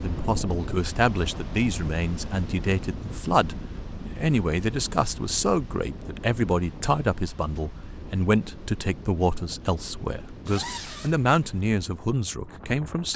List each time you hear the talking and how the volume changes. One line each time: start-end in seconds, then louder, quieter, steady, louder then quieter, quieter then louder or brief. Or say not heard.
0.0-13.1 steady.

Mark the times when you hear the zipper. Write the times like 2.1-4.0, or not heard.
10.4-11.2.